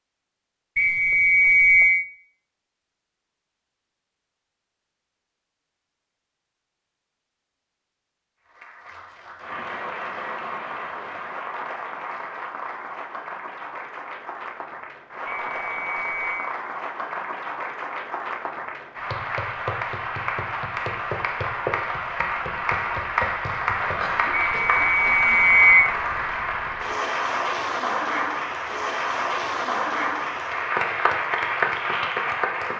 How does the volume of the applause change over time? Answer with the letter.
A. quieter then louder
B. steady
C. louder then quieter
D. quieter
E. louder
E.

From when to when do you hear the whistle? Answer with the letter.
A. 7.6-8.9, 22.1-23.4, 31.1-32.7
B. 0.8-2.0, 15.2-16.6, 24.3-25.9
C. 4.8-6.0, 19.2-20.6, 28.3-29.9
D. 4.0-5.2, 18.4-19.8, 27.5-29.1
B.